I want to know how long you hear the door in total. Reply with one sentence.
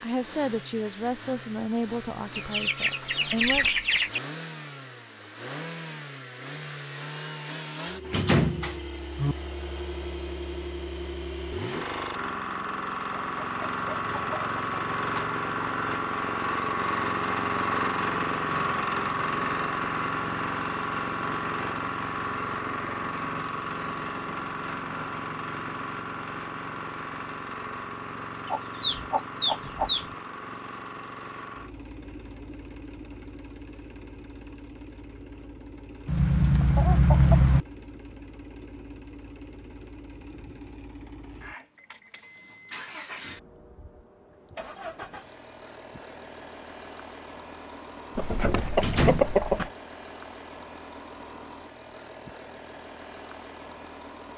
You can hear the door for 2 seconds altogether.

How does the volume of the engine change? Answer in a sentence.
The loudness of the engine goes up, then down.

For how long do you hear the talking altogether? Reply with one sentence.
You can hear the talking for 4 seconds altogether.